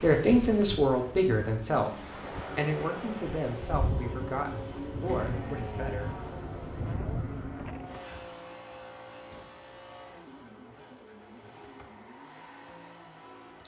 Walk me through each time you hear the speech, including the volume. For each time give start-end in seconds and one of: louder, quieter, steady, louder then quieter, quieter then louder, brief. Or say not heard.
0.0-6.2 quieter.